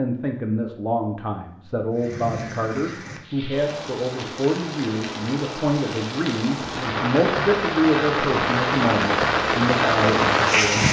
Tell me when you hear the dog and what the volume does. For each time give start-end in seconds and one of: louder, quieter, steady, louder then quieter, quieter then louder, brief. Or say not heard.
not heard.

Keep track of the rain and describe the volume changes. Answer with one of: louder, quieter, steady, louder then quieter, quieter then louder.
louder.